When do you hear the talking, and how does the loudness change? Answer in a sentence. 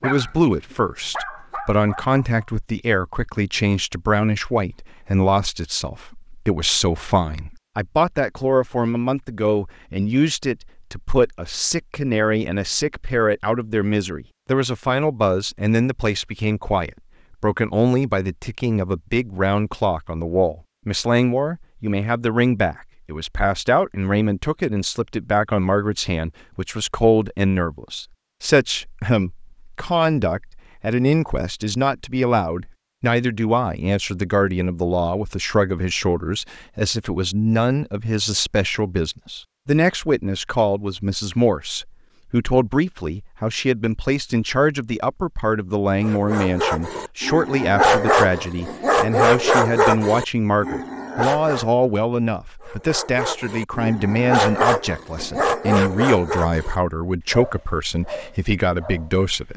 You can hear the talking from 0.0 to 59.5 s, at a steady volume.